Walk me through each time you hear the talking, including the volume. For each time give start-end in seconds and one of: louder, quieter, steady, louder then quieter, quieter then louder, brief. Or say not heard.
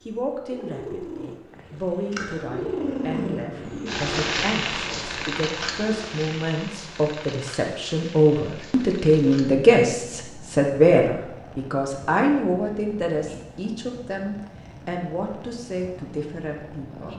0.1-17.1 louder then quieter.